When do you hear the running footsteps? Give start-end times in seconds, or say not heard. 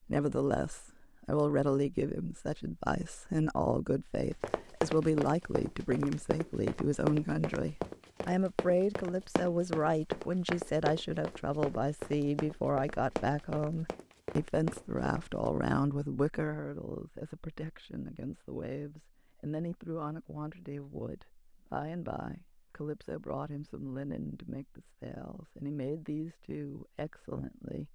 4.4-15.6.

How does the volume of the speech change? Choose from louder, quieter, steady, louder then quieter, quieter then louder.
quieter.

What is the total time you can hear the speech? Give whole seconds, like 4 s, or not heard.
28 s.